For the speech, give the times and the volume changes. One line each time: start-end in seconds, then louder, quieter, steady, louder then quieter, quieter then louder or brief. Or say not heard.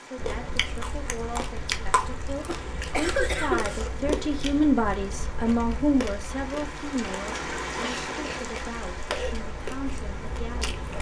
0.0-10.8 louder then quieter.